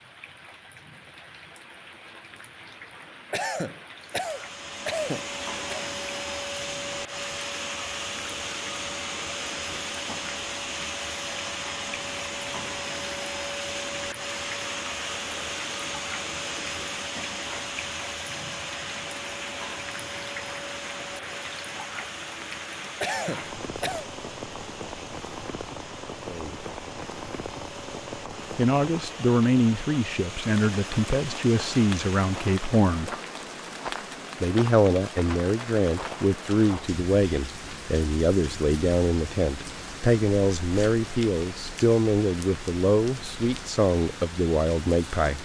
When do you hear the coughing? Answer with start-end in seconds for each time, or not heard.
3.3-5.8, 23.0-24.1.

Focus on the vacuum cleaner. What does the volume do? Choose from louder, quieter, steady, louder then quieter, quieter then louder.
quieter.